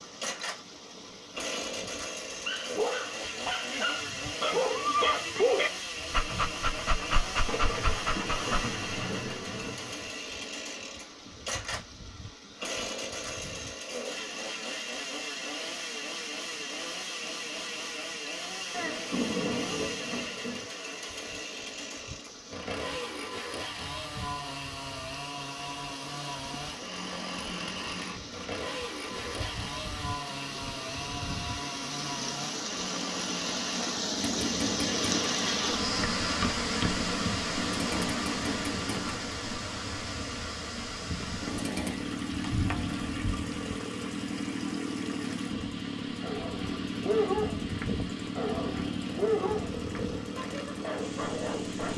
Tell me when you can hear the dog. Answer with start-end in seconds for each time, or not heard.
2.4-8.8, 45.5-51.9.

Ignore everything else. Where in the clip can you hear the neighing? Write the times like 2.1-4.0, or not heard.
4.5-5.2.